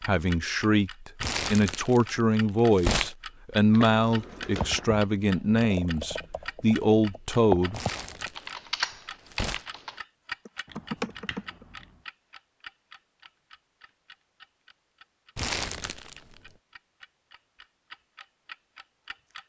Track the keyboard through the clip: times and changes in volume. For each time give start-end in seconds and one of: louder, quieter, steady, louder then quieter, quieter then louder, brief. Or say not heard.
4.5-11.7 quieter then louder.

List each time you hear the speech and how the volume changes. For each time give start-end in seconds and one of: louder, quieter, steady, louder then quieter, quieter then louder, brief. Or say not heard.
0.1-7.8 steady.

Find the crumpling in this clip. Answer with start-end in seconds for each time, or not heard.
1.2-3.1, 7.7-9.7, 15.3-16.5.